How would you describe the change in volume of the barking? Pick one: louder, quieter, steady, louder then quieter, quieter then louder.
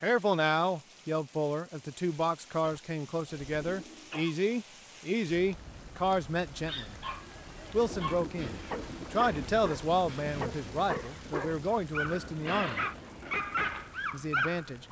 louder.